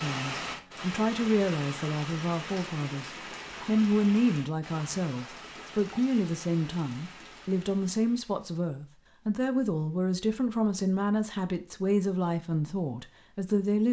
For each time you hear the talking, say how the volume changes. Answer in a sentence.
The talking can be heard from 0.0 to 13.8 s, at a steady volume.